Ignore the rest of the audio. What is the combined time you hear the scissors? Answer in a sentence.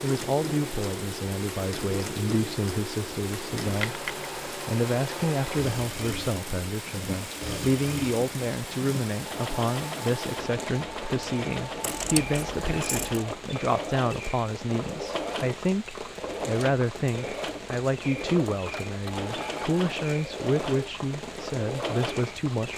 You can hear the scissors for 2 seconds altogether.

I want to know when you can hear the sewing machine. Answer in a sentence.
You can hear the sewing machine from 0.0 to 22.4 s.